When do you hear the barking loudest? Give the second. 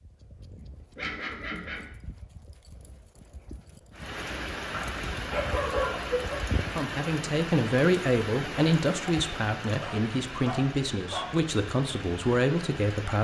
6 s.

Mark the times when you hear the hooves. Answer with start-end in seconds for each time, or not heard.
0.0-6.9.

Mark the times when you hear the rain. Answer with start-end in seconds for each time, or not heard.
3.9-13.1.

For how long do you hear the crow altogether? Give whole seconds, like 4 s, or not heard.
not heard.